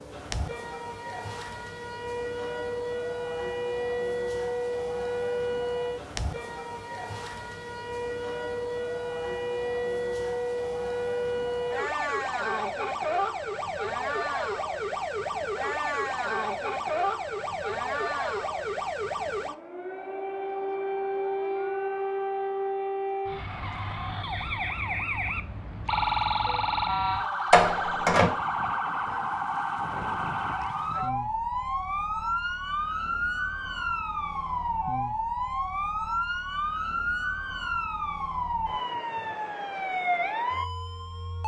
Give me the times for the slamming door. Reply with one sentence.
You can hear the slamming door from 27.5 to 28.3 s.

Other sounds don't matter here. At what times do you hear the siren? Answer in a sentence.
The siren can be heard from 0.0 to 41.4 s.